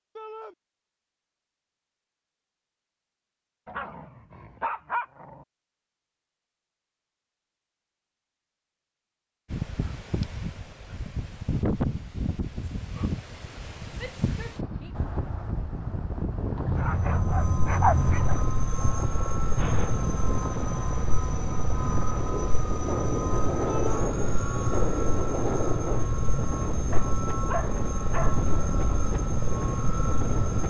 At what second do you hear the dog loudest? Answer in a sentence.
The loudest moment of the dog is at 18 seconds.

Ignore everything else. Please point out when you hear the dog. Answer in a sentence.
You can hear the dog from 3.6 to 5.5 s, from 16.6 to 18.4 s and from 26.9 to 28.4 s.